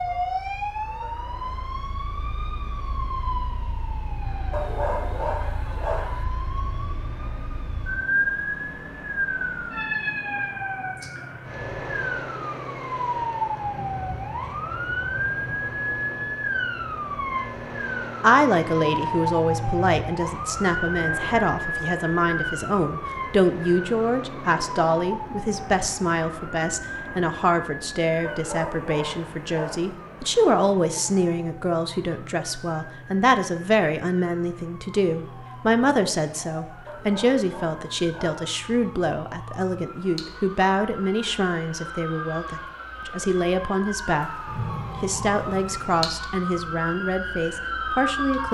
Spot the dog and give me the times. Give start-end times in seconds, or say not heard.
4.5-6.2, 28.2-29.9, 36.9-38.4.